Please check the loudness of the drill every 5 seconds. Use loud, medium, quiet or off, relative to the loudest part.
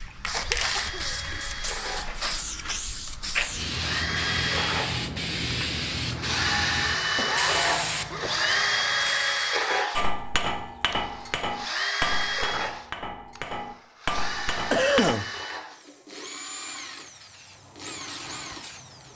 medium, loud, medium, quiet.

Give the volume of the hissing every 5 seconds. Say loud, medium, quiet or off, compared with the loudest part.
loud, loud, off, quiet.